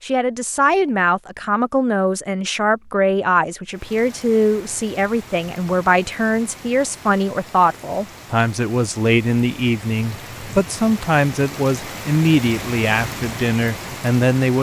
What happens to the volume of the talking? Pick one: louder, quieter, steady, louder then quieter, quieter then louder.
steady.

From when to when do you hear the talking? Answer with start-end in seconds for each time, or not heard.
0.0-14.5.